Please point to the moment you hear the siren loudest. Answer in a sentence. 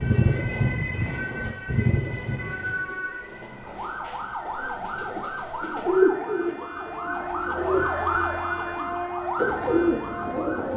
The volume of the siren peaks at 8 seconds.